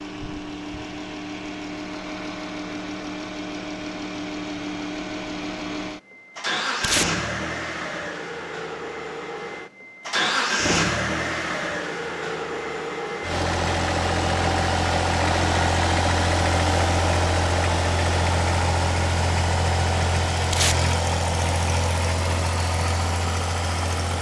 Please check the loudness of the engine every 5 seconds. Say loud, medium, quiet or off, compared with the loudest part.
medium, medium, loud, loud, loud.